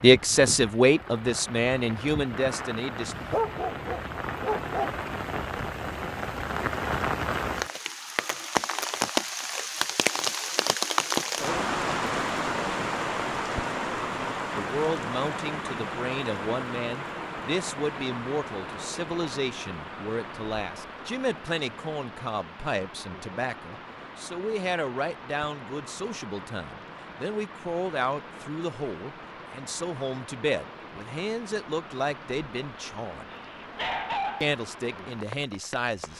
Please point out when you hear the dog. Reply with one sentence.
The dog can be heard from 3.0 to 5.4 s and from 33.3 to 34.5 s.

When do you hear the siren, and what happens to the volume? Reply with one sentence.
You can't hear the siren here.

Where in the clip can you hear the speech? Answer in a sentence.
The speech can be heard from 0.0 to 3.1 s, from 14.6 to 33.2 s and from 34.4 to 36.1 s.